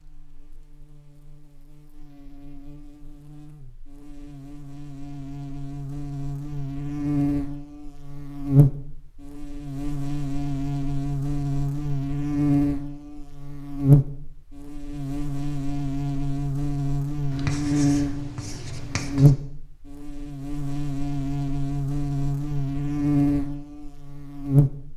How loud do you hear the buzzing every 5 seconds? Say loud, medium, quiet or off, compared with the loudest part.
quiet, loud, loud, loud, loud.